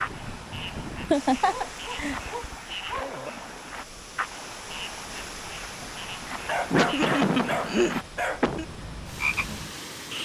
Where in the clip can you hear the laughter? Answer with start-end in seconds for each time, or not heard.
1.1-2.1, 6.7-8.7.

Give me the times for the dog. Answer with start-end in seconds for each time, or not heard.
1.4-3.3, 6.5-8.4.